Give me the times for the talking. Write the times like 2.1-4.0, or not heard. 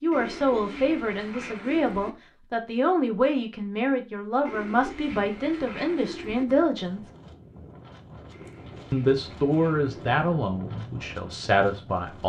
0.0-7.0, 8.9-12.2.